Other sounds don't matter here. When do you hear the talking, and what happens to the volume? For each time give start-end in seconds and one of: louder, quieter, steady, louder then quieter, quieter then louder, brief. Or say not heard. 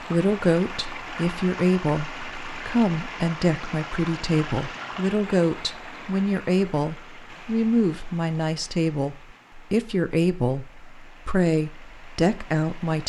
0.0-13.0 steady.